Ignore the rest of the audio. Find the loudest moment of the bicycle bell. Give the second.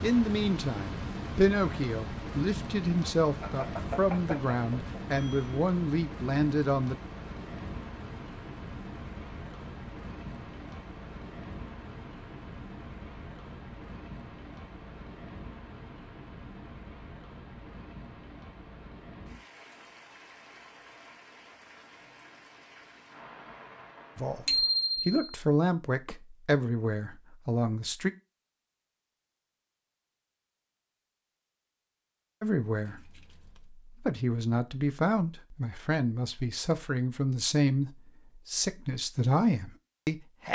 25 s.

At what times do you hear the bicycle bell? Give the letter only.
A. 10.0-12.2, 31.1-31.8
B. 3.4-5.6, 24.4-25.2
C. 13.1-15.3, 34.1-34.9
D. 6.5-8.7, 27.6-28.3
B.